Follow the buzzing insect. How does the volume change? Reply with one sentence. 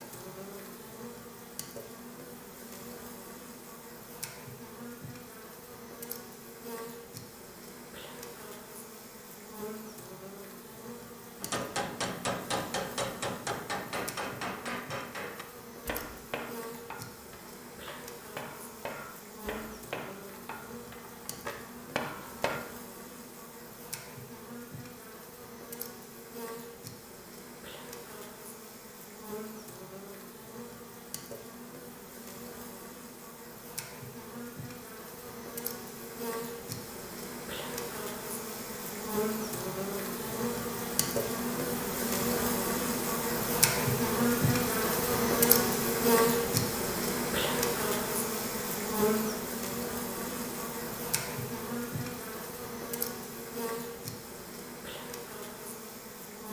The volume of the buzzing insect goes up.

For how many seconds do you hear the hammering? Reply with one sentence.
You can hear the hammering for 11 seconds altogether.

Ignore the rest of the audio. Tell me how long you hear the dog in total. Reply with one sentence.
The dog can't be heard in this clip.